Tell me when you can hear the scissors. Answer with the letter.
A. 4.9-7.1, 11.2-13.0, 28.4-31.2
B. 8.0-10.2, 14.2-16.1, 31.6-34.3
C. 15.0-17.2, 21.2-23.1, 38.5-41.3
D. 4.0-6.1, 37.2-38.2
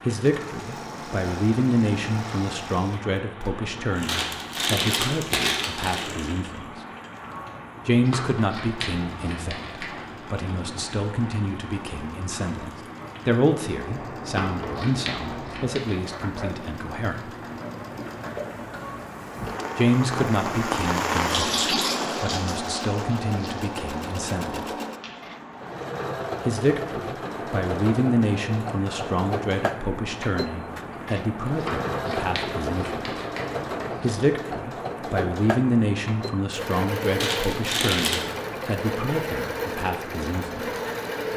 B.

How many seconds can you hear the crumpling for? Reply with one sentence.
You can hear the crumpling for 3 seconds altogether.